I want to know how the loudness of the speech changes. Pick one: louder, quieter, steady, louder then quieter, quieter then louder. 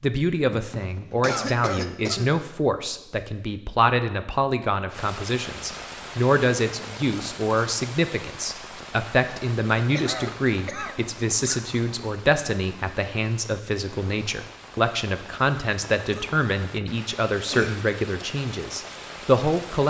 steady.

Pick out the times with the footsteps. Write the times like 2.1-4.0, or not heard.
not heard.